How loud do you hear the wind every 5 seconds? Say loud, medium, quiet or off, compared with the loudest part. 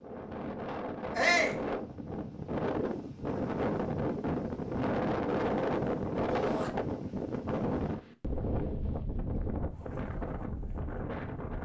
loud, loud, medium.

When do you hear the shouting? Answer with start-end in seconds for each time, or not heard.
1.1-1.6, 6.3-6.7.